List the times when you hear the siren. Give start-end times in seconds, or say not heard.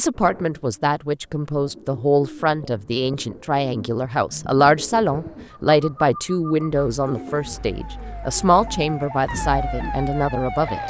7.2-10.8.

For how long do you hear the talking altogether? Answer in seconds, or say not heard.
11 s.